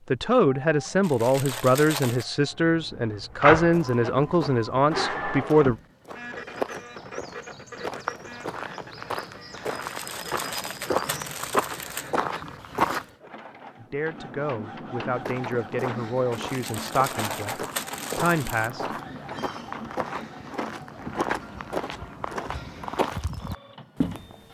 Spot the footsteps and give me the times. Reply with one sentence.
The footsteps can be heard from 3.5 to 13.1 s and from 15.1 to 24.4 s.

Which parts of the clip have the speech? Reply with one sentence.
The speech can be heard from 0.1 to 5.8 s, from 13.8 to 17.6 s and from 18.1 to 18.9 s.